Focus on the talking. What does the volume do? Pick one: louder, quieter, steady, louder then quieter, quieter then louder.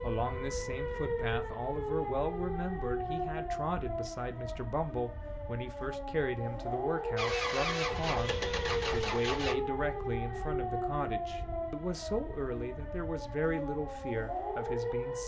steady.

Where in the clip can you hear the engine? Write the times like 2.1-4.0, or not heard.
7.2-9.6.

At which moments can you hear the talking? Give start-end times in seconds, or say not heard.
0.0-15.2.